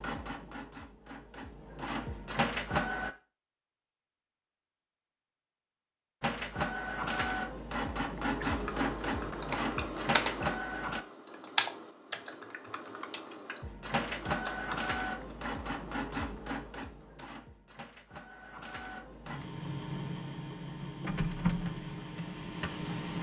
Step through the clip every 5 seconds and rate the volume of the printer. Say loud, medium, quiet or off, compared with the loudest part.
loud, loud, loud, medium, loud.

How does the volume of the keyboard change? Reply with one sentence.
The loudness of the keyboard goes up, then down.